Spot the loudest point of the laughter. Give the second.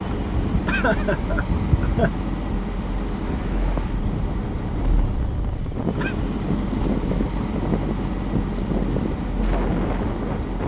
1 s.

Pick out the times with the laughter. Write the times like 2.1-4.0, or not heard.
0.7-2.1, 5.5-6.2.